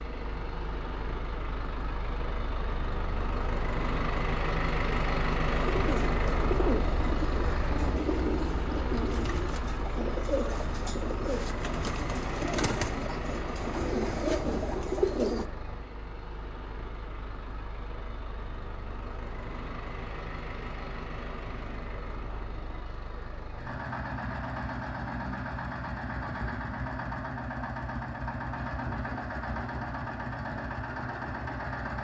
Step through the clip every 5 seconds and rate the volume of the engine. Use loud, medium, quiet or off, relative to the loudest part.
loud, loud, medium, medium, medium, loud, loud.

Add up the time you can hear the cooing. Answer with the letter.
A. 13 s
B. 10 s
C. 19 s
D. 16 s
B.